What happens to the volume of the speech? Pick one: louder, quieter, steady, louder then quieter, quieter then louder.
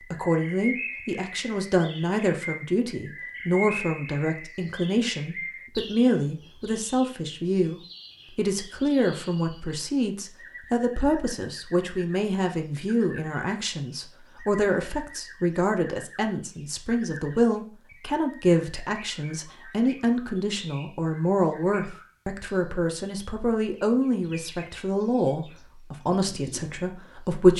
steady.